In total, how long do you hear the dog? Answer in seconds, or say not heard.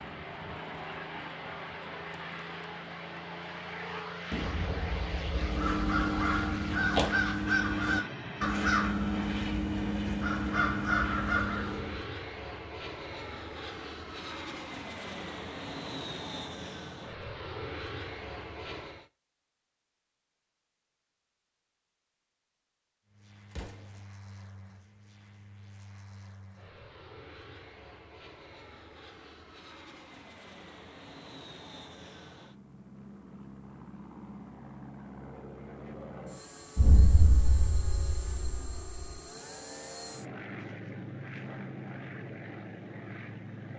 not heard.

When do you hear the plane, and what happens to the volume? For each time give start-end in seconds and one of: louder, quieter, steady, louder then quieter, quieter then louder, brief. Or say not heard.
0.0-19.1 steady
23.1-43.7 louder.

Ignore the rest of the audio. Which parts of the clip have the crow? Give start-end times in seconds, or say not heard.
5.3-12.1.